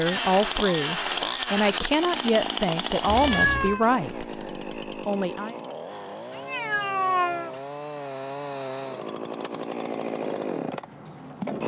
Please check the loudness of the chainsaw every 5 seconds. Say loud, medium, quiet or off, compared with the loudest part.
loud, medium, loud.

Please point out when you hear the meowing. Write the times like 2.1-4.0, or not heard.
3.0-3.9, 6.3-7.5.